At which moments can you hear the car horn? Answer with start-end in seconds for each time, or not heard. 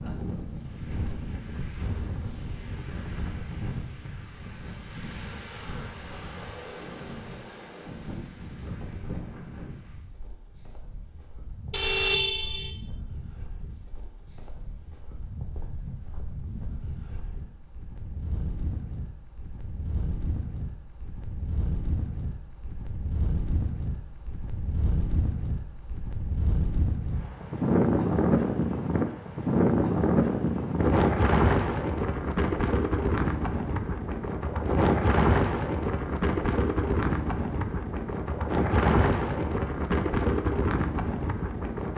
11.7-12.7.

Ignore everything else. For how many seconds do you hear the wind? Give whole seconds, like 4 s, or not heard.
42 s.